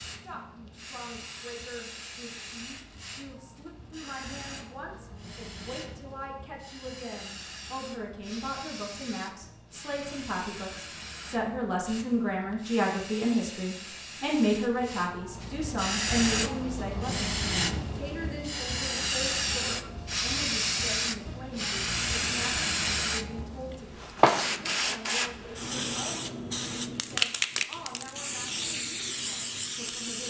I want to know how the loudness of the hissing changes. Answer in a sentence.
The loudness of the hissing goes up.